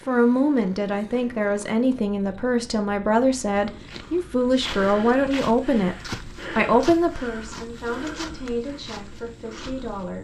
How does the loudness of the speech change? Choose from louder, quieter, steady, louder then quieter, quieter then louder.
quieter.